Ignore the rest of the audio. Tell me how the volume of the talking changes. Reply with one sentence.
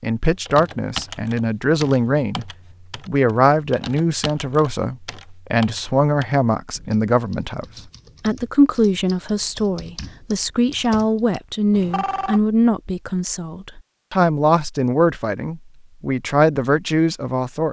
The loudness of the talking stays about the same.